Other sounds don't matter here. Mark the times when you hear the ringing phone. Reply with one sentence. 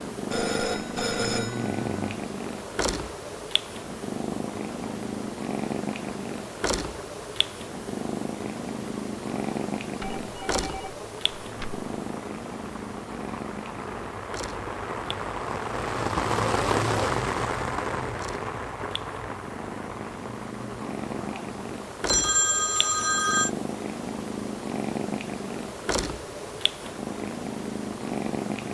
The ringing phone can be heard from 0.3 to 2.2 s, from 10.0 to 11.8 s and from 22.1 to 23.5 s.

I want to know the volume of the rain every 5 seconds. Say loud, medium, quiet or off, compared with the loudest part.
quiet, quiet, medium, loud, quiet, quiet.